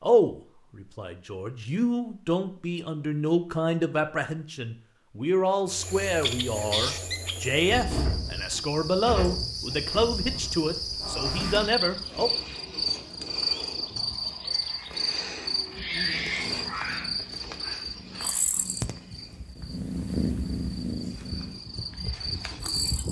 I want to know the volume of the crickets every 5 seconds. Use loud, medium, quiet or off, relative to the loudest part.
off, loud, loud, loud, medium.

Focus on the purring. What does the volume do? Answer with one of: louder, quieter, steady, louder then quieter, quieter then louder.
louder then quieter.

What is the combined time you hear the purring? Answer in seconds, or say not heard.
7 s.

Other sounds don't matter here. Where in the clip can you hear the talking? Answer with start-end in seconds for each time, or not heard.
0.0-12.3.